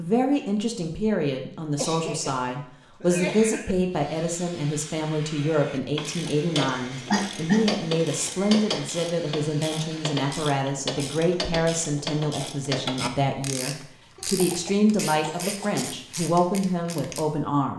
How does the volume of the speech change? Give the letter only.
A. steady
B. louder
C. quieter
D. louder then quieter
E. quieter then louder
A.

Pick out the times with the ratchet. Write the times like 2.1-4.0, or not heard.
6.0-17.2.